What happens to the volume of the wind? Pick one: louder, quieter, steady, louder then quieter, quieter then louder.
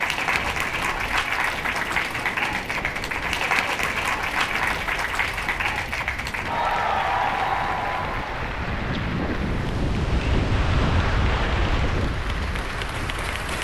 louder.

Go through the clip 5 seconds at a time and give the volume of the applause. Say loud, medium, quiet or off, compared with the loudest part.
loud, loud, medium.